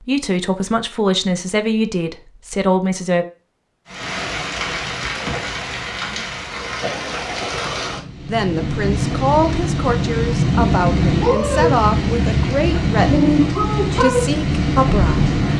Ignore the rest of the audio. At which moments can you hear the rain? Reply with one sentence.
You can hear the rain from 3.9 to 15.5 s.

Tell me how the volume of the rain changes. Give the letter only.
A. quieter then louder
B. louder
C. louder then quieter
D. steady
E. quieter
B.